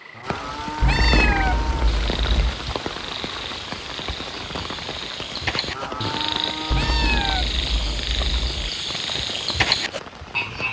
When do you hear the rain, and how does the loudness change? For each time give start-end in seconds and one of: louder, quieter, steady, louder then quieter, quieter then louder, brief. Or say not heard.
0.0-10.6 quieter.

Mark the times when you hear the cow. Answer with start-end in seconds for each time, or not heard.
0.1-1.9, 5.6-7.4.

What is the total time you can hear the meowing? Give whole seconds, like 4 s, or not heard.
4 s.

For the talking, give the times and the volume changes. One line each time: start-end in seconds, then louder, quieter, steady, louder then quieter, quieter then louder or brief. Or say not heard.
not heard.